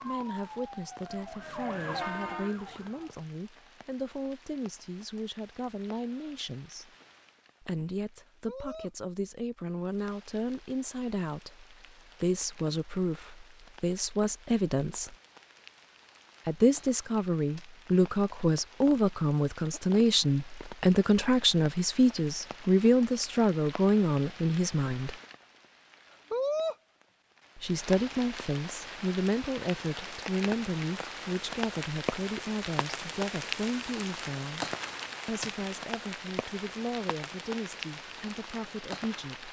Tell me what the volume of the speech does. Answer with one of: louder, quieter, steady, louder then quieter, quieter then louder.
louder then quieter.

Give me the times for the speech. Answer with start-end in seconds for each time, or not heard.
0.0-6.9, 7.6-15.2, 16.4-25.1, 27.6-34.6, 35.2-39.4.